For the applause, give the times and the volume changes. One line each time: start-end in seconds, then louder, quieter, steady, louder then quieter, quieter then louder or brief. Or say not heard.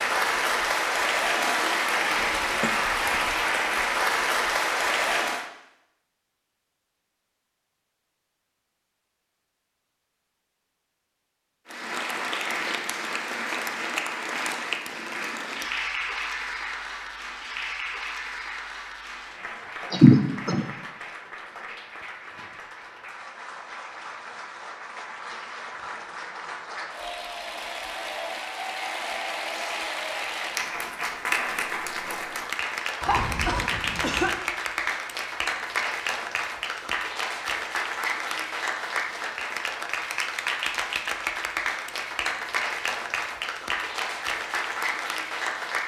0.0-5.5 steady
11.7-45.8 quieter then louder.